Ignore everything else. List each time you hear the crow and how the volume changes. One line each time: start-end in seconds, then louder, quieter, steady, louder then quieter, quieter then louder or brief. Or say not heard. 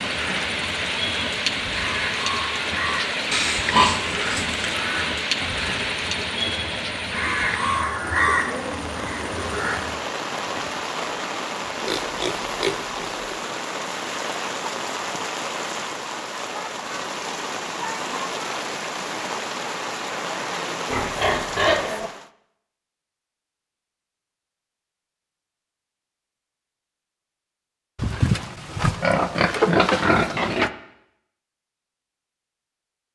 0.0-10.0 louder.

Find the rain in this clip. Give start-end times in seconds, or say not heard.
0.0-22.3.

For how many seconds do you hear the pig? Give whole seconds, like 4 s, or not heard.
7 s.